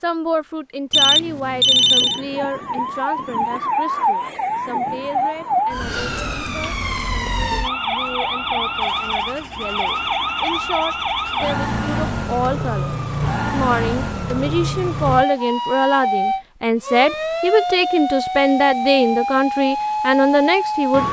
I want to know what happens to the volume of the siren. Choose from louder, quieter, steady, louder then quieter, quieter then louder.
steady.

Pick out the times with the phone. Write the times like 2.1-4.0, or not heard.
0.9-2.2.